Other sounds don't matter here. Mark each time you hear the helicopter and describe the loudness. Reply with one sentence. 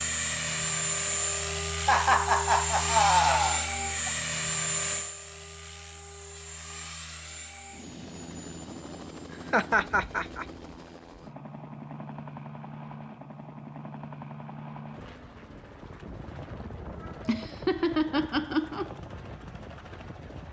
The helicopter can be heard from 0.0 to 20.4 s, getting quieter.